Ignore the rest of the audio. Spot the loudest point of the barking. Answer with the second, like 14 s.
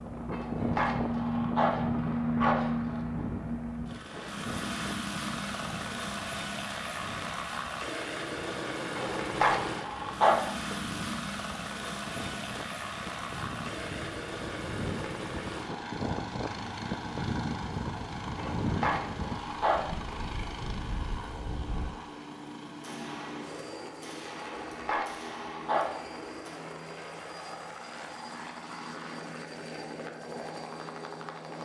10 s.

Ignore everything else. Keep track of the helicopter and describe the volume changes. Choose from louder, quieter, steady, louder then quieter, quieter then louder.
quieter.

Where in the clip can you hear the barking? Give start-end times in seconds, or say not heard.
0.3-3.0, 8.9-10.8, 18.4-20.1, 24.4-26.1.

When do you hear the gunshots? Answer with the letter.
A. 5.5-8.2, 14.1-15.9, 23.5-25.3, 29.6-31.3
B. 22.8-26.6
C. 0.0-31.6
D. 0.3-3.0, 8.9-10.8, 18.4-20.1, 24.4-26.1
B.